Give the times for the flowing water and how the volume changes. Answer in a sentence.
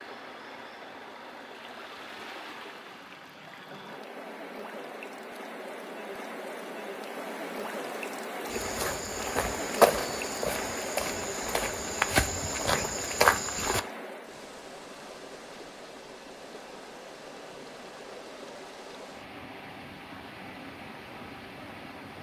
The flowing water can be heard from 0.0 to 22.1 s, getting louder then quieter.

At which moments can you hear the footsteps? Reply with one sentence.
You can hear the footsteps from 8.5 to 13.8 s.